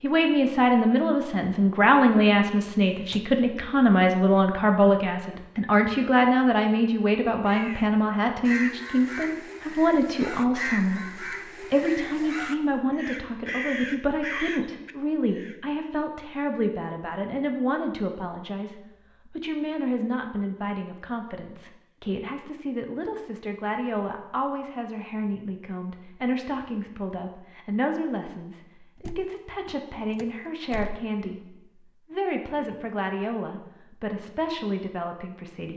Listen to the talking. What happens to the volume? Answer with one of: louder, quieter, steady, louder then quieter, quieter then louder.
quieter.